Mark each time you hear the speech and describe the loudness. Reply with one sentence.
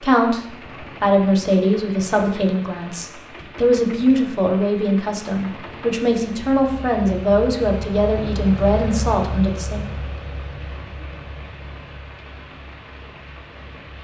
You can hear the speech from 0.0 to 9.8 s, at a steady volume.